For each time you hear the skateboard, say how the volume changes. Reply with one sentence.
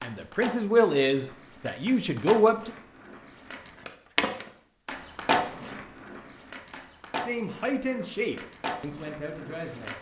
The skateboard can be heard from 0.0 to 9.9 s, getting louder then quieter.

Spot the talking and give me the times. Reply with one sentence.
You can hear the talking from 0.0 to 2.8 s and from 7.2 to 9.9 s.